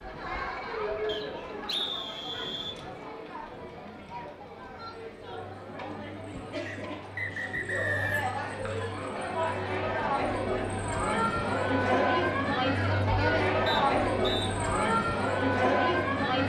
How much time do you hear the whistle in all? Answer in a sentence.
The whistle can be heard for 4 seconds in total.